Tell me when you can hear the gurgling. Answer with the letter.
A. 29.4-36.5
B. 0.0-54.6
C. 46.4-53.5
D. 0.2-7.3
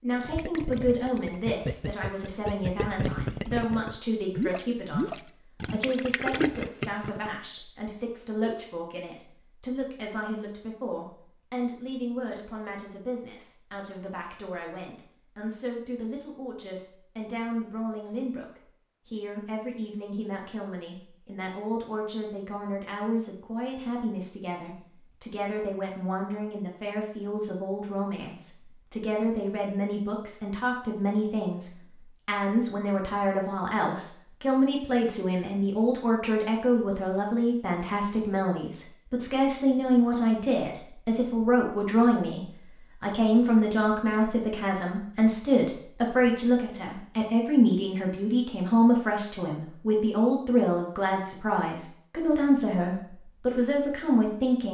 D.